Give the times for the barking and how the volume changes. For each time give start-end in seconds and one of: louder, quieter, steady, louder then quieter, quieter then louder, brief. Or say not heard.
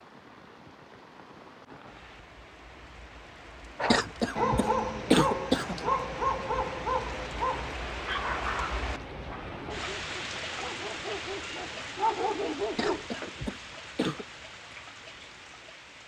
3.8-13.1 quieter then louder.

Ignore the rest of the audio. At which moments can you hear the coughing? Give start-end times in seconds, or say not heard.
3.9-5.9, 12.8-14.2.